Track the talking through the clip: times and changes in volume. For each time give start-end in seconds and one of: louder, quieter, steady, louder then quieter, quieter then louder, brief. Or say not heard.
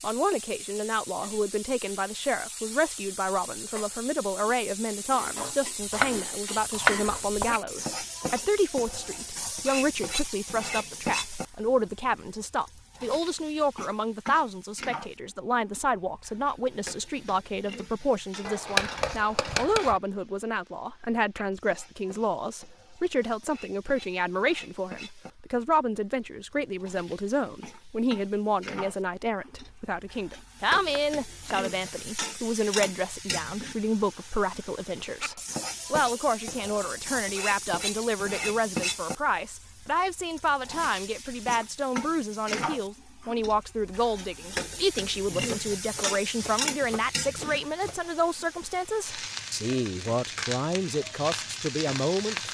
0.0-52.4 steady.